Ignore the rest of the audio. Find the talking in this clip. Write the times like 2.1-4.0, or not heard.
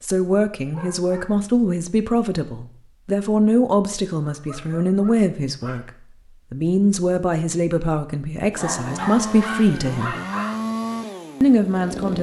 0.0-5.9, 6.5-10.2, 11.4-12.1.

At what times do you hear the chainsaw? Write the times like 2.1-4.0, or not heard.
8.5-12.1.